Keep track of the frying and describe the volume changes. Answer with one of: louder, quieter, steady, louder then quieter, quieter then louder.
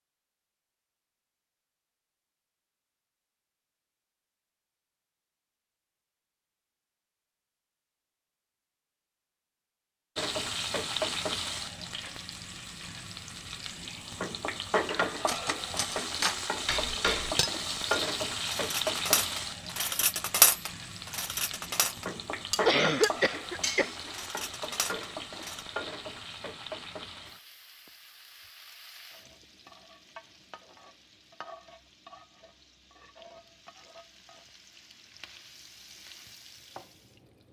quieter.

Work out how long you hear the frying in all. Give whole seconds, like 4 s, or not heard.
27 s.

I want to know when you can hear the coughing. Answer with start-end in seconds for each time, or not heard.
22.6-23.9.